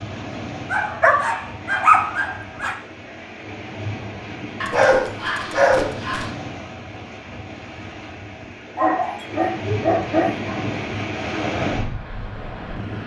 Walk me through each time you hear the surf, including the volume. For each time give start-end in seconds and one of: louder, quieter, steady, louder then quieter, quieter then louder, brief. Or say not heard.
0.0-13.0 louder.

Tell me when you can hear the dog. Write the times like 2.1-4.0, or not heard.
0.7-2.8, 4.6-6.3, 8.8-10.6.